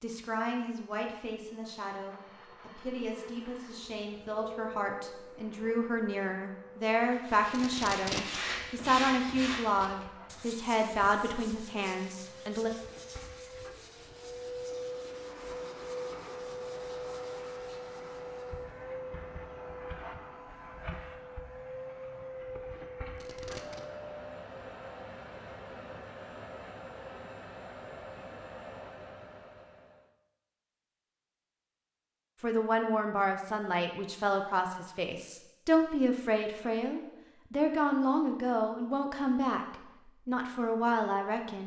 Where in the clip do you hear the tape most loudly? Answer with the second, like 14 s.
8 s.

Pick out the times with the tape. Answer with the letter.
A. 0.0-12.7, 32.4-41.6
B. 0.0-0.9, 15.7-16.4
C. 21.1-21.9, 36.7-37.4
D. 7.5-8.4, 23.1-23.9
D.